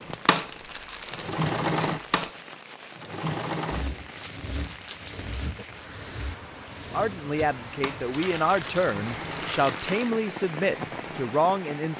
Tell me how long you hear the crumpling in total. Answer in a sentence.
The crumpling can be heard for 5 seconds in total.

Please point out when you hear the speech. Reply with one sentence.
The speech can be heard from 6.9 to 11.9 s.